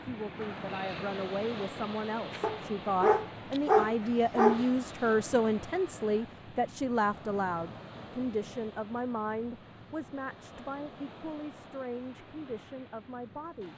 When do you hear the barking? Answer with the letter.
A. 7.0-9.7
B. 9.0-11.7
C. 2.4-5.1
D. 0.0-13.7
C.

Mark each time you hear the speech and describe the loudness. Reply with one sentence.
The speech can be heard from 0.0 to 13.7 s, getting louder then quieter.